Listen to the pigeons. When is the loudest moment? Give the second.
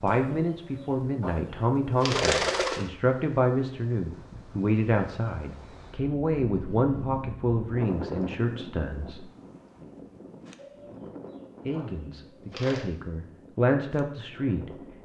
2 s.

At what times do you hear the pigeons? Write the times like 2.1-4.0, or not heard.
0.1-2.9, 10.6-12.8.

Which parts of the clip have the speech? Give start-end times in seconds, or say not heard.
0.0-9.3, 11.7-15.0.